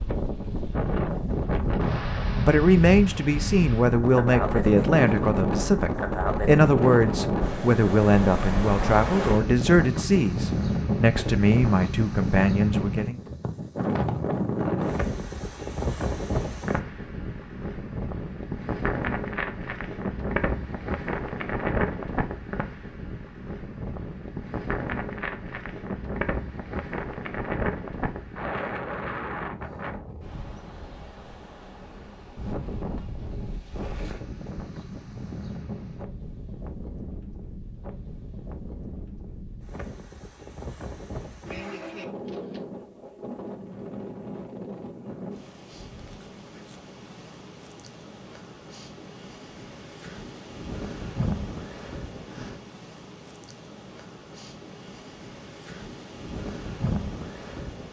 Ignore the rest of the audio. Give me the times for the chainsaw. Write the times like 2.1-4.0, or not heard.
not heard.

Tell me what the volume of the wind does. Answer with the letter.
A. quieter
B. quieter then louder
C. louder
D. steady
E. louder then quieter
A.